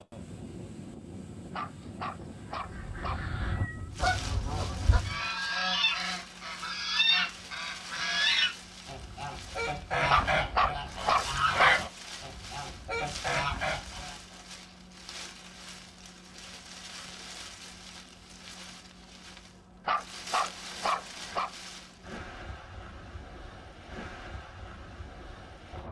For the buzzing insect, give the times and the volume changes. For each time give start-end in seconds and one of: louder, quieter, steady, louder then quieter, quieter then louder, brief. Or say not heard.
not heard.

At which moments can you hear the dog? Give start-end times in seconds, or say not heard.
1.5-3.3, 10.1-11.8, 19.9-21.5.